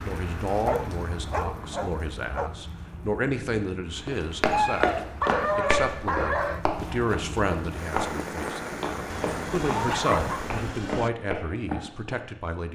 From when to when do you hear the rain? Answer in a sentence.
The rain can be heard from 0.0 to 10.9 s.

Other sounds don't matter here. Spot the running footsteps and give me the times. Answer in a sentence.
You can hear the running footsteps from 4.0 to 12.2 s.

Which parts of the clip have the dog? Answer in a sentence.
You can hear the dog from 0.5 to 2.5 s, from 4.5 to 6.7 s and from 9.1 to 11.1 s.